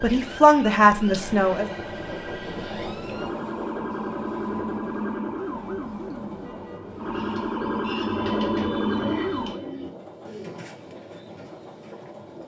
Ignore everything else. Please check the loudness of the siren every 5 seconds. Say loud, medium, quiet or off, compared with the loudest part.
medium, loud, off.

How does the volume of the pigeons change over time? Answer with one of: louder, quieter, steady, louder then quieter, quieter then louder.
louder then quieter.